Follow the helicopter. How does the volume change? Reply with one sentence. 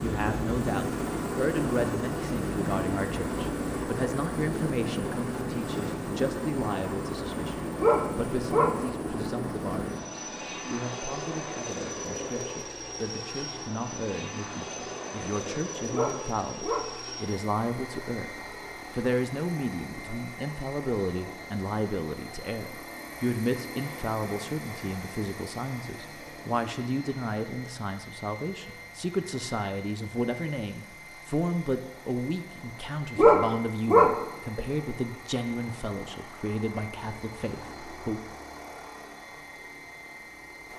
The loudness of the helicopter goes down.